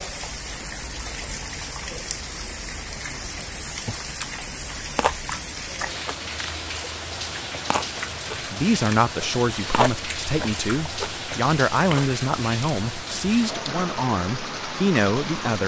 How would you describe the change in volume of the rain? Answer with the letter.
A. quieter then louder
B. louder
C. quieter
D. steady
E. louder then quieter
D.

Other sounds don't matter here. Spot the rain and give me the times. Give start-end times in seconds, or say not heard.
0.0-15.6.